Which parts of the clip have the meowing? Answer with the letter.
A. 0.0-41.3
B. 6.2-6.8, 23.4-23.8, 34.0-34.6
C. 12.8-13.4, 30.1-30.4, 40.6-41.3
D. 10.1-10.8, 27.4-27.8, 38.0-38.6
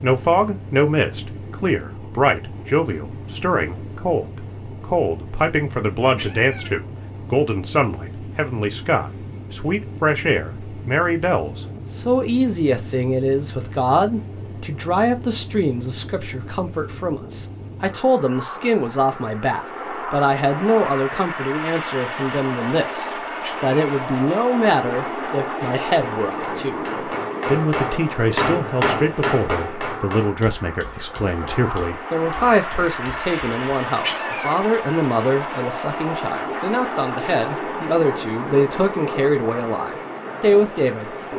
B.